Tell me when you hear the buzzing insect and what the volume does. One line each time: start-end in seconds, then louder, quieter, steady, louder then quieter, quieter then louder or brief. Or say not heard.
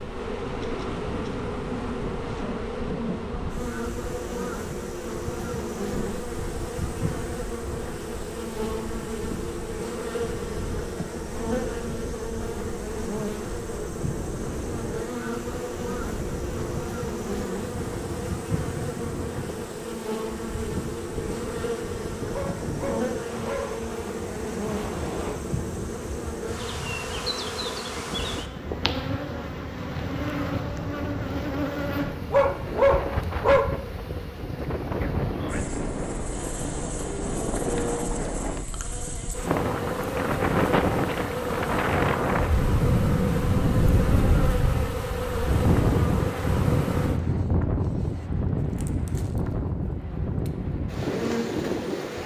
0.0-52.2 steady.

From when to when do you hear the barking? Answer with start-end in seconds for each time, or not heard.
22.3-23.8, 32.3-33.7.